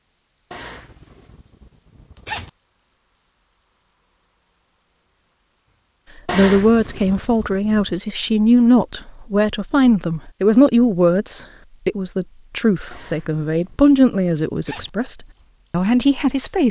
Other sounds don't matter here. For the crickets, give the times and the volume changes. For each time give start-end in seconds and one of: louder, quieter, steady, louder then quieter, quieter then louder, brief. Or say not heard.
0.1-16.6 louder.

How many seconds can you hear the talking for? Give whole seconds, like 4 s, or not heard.
10 s.